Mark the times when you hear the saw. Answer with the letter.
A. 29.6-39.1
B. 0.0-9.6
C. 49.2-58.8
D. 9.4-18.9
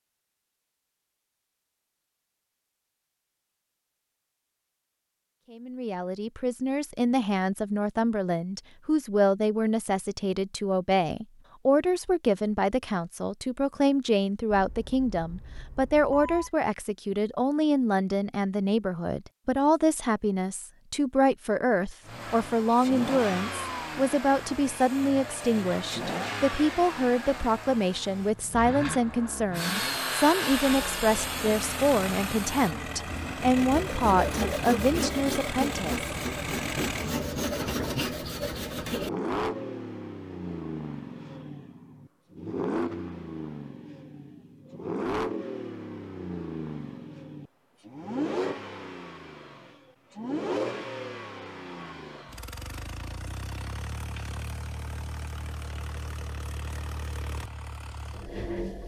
A.